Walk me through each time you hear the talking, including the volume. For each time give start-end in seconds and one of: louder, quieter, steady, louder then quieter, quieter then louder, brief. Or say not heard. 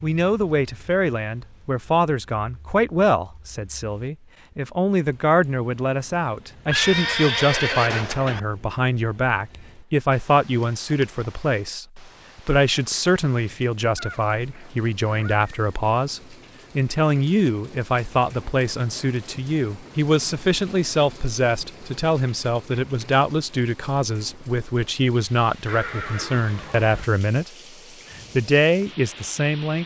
0.0-27.5 steady
28.4-29.8 brief.